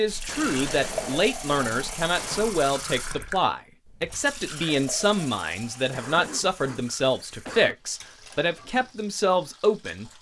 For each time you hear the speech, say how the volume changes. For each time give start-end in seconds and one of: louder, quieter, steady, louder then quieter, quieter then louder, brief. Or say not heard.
0.0-10.1 steady.